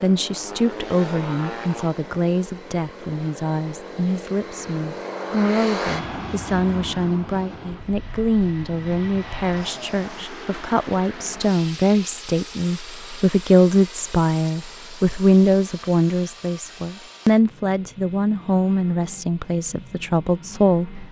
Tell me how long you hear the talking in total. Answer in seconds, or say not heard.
21 s.